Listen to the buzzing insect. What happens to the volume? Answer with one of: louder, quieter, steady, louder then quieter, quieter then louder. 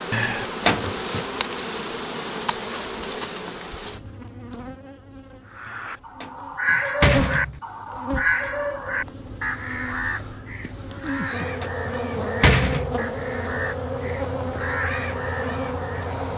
quieter then louder.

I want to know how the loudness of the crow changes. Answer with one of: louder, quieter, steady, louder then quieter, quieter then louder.
quieter.